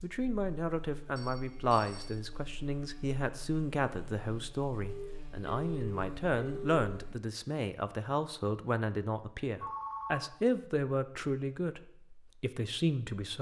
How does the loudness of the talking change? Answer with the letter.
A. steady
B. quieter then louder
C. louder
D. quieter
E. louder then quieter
A.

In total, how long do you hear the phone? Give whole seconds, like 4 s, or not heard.
4 s.